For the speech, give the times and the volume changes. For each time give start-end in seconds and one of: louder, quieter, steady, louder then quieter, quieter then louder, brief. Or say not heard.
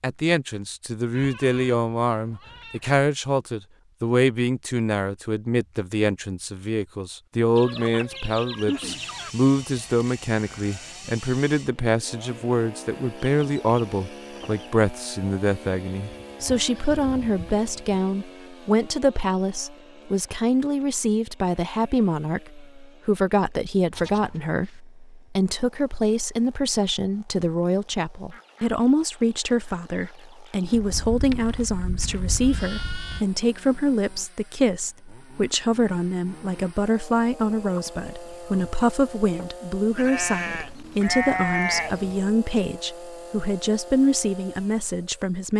0.0-45.5 steady.